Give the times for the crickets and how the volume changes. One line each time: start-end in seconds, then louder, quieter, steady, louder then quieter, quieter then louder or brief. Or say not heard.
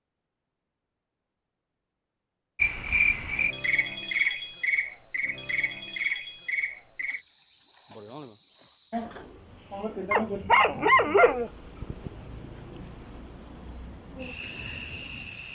2.5-15.4 quieter.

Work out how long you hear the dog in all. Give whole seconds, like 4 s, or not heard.
2 s.